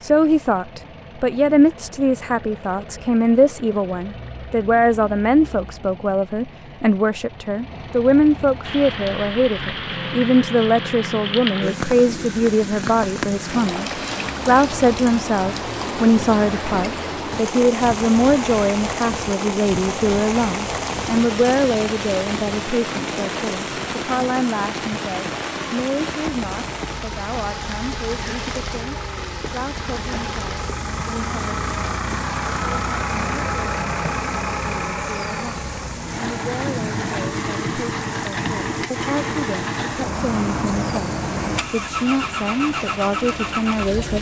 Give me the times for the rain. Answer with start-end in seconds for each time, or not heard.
8.6-44.1.